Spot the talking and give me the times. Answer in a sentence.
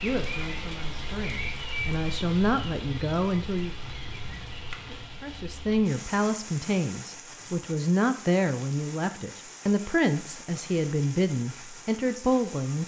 The talking can be heard from 0.0 to 3.8 s and from 5.2 to 12.8 s.